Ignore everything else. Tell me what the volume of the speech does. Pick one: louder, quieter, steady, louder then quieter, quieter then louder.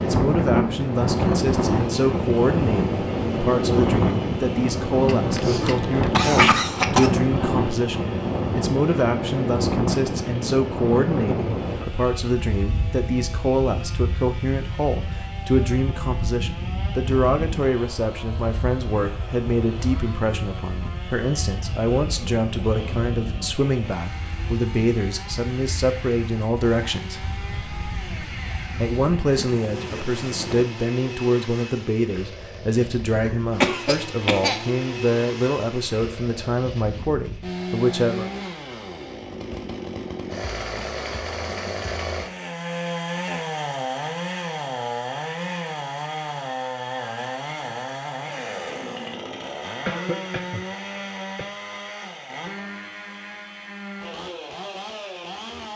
steady.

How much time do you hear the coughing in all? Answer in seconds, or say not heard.
5 s.